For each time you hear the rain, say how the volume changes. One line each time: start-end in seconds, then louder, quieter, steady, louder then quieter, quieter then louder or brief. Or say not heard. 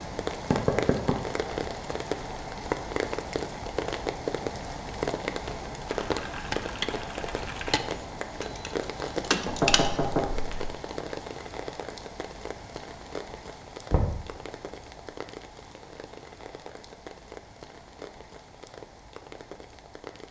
0.0-20.2 quieter.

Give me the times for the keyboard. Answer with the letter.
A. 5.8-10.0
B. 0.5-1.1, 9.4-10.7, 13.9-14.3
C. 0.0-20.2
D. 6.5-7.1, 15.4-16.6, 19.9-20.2
A.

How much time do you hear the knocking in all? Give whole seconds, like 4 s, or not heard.
2 s.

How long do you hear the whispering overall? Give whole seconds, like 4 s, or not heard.
not heard.